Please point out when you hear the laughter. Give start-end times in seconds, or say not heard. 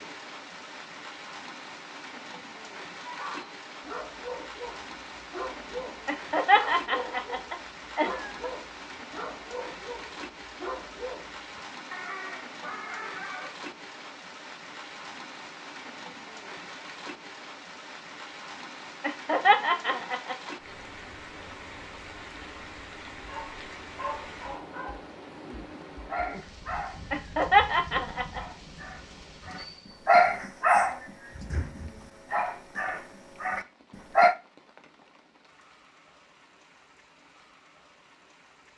6.0-8.5, 19.0-20.4, 27.1-28.4.